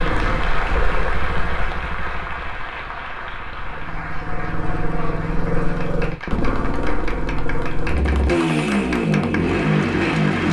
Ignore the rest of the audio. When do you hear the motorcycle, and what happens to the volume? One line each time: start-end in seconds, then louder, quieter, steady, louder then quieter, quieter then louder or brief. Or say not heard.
0.0-10.4 quieter then louder.